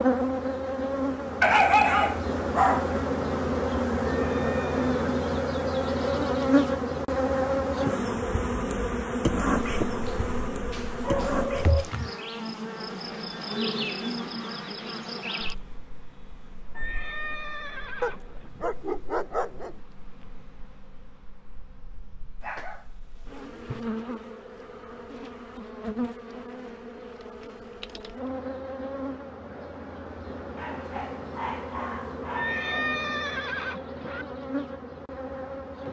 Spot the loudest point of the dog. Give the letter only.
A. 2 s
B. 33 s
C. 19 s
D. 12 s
A.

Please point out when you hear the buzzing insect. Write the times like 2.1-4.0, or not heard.
0.0-35.8.